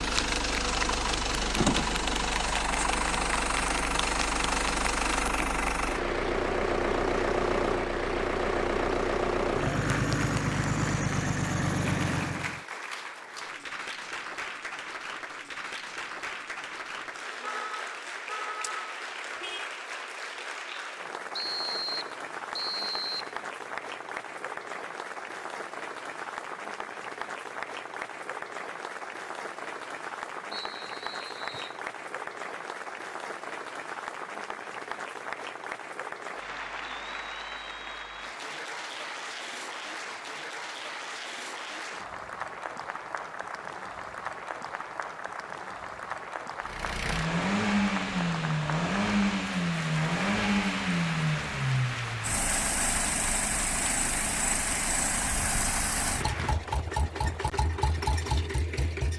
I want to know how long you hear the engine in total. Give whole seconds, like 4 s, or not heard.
25 s.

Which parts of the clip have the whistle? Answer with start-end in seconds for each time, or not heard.
21.3-23.3, 30.5-31.8.